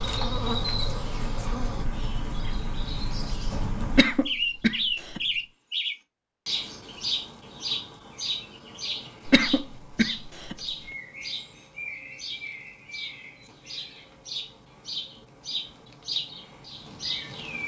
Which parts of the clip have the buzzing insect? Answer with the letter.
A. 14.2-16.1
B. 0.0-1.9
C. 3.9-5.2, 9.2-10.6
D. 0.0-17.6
B.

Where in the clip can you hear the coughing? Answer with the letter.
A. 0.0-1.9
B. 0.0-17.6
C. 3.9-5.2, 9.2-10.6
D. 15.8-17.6
C.